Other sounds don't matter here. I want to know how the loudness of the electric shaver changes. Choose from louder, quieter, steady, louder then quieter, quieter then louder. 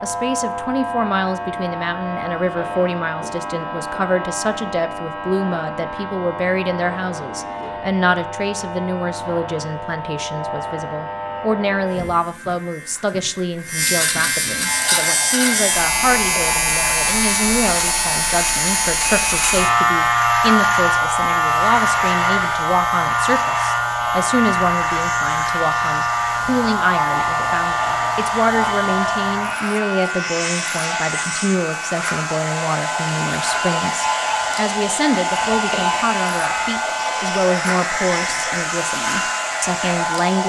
louder then quieter.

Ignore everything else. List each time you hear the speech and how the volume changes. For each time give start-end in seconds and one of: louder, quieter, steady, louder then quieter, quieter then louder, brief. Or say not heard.
0.0-40.4 steady.